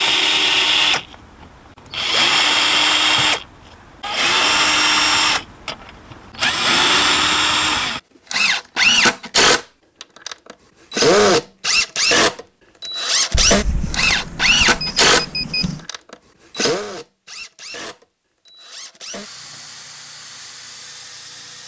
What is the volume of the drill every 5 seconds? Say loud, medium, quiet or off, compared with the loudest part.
loud, loud, loud, medium, quiet.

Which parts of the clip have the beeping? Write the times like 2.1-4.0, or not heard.
13.3-15.8.